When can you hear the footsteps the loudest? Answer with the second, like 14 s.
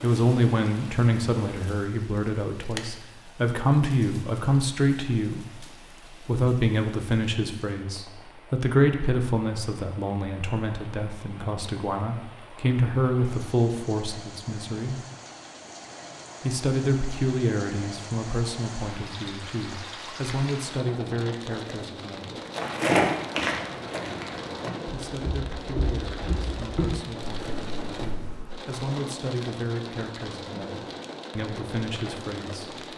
23 s.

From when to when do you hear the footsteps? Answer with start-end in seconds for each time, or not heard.
22.5-28.5.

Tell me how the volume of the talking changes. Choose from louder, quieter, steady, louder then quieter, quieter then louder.
quieter.